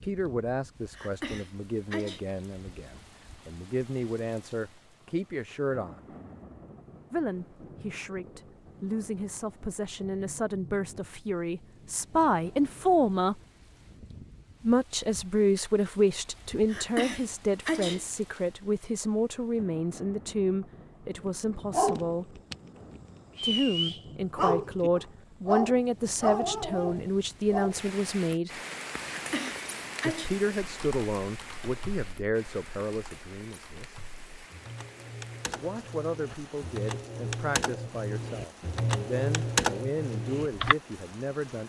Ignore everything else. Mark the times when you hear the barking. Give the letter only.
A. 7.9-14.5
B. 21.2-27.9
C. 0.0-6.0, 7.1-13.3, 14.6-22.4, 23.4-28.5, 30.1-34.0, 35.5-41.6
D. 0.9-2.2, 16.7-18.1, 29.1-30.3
B.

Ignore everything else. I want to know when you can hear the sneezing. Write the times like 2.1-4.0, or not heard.
0.9-2.2, 16.7-18.1, 29.1-30.3.